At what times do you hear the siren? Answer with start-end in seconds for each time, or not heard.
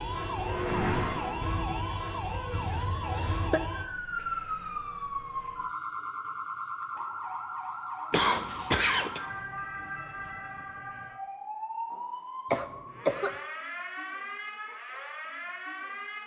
0.0-16.2.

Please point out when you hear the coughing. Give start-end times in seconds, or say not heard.
2.5-3.6, 8.1-9.2, 12.5-13.3.